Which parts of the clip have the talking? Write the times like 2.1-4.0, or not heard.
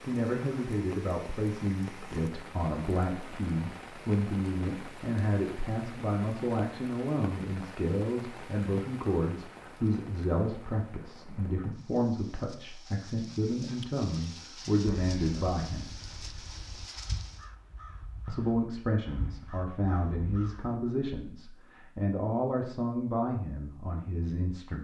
0.1-15.9, 18.2-24.8.